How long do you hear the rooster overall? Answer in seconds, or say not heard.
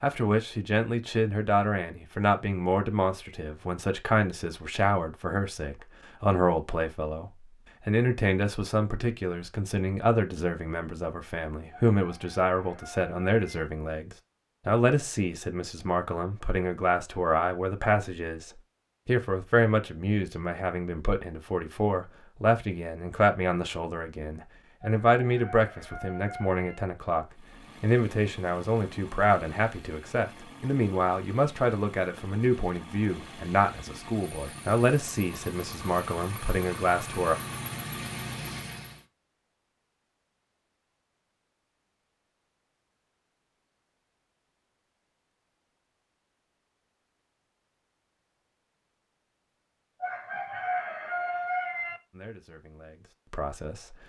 6 s.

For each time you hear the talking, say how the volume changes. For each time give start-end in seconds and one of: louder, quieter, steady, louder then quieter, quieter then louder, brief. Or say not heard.
0.0-37.4 steady
52.1-54.0 brief.